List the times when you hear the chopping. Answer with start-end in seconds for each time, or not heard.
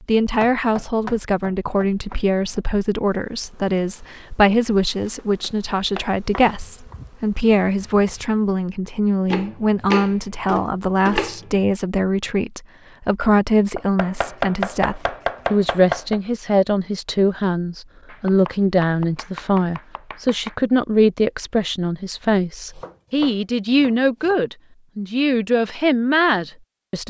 0.4-2.6, 5.4-7.0, 9.3-11.6, 13.8-16.2, 18.1-20.6, 22.7-24.4.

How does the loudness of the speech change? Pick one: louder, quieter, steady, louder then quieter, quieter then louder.
steady.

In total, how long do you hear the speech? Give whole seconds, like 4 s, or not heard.
27 s.